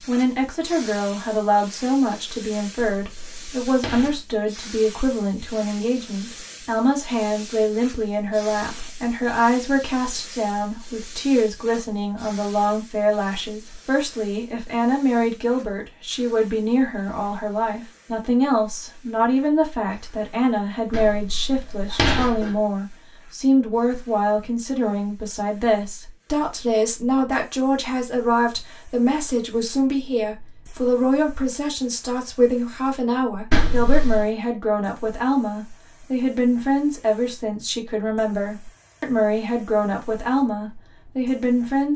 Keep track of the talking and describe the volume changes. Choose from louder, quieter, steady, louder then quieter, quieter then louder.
steady.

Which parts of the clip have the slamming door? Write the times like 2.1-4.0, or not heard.
2.8-4.2, 20.9-22.6, 33.5-34.3.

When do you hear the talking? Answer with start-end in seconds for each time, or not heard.
0.1-41.9.